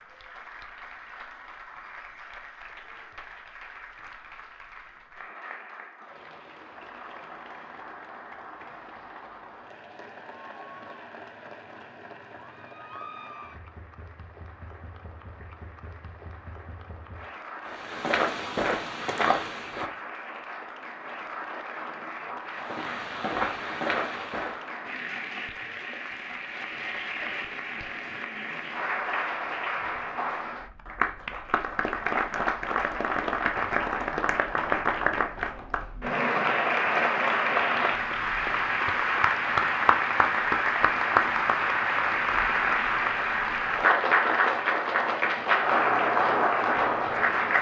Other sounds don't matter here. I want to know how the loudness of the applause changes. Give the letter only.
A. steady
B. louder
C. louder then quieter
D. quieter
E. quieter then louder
B.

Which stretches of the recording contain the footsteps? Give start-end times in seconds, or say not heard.
17.6-19.9, 22.6-24.6.